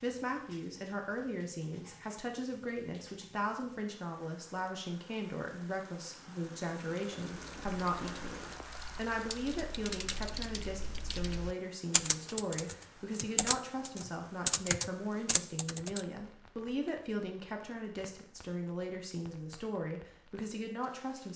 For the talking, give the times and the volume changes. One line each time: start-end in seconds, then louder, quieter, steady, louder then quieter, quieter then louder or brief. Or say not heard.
0.0-21.3 steady.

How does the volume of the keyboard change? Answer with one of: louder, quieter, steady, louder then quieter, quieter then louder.
louder.